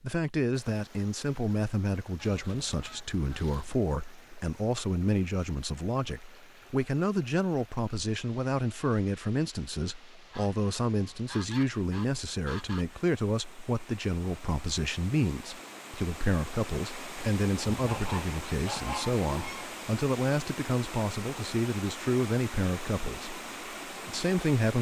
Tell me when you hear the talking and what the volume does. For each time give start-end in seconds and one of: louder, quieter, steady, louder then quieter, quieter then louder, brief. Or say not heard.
0.0-24.7 steady.